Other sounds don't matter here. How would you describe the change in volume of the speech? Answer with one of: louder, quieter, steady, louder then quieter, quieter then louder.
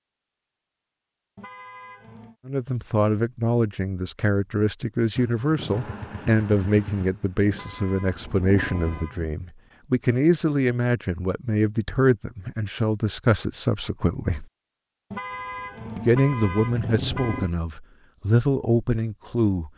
steady.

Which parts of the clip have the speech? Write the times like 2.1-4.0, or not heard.
2.5-14.4, 15.9-19.7.